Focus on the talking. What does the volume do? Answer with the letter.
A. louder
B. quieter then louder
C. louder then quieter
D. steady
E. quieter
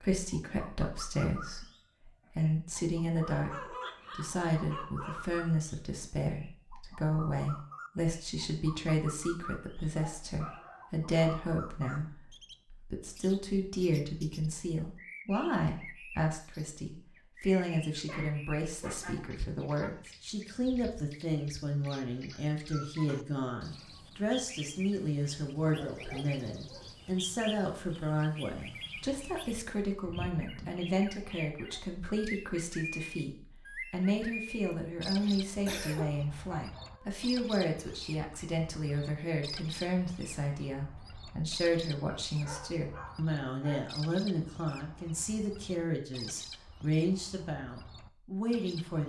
D.